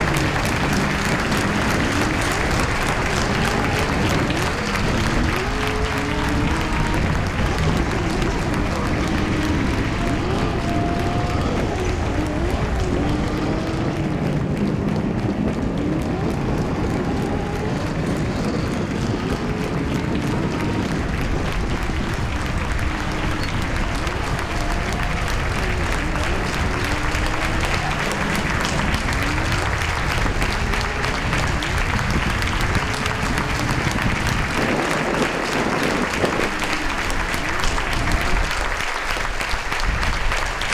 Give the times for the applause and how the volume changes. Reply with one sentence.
The applause can be heard from 0.0 to 40.6 s, getting quieter then louder.